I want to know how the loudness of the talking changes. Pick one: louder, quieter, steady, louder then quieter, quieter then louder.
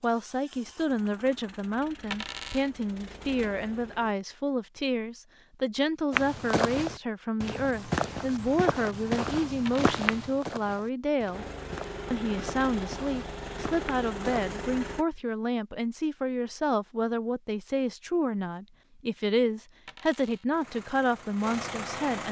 steady.